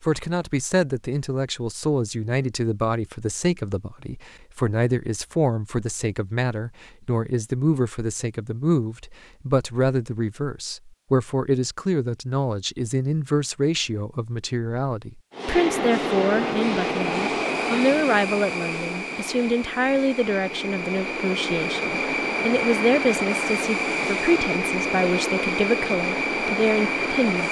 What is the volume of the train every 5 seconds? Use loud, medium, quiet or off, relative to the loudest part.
off, off, off, loud, loud, loud.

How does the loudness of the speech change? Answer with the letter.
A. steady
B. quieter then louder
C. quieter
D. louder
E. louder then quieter
A.